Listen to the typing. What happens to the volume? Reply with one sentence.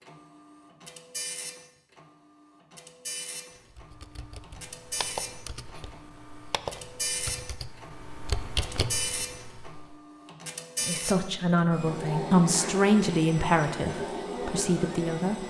The volume of the typing goes down, then up.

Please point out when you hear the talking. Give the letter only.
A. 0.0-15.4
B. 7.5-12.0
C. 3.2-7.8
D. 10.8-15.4
D.